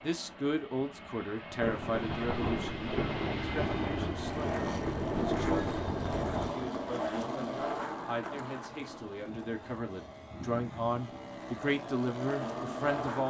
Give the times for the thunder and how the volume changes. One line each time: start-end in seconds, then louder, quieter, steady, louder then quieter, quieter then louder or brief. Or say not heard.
1.6-6.5 steady.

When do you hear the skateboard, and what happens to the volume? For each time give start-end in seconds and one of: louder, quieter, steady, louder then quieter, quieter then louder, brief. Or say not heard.
4.2-13.2 quieter then louder.